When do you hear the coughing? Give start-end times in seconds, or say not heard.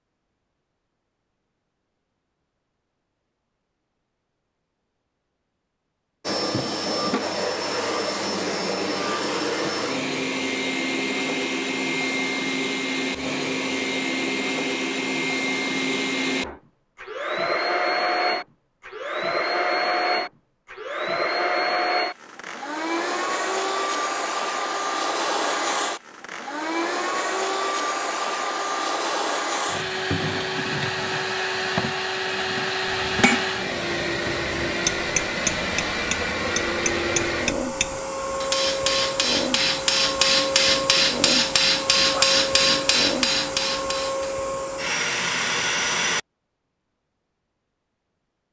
not heard.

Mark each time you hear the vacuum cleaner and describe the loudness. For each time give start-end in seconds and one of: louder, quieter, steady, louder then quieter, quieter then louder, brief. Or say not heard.
6.2-46.2 steady.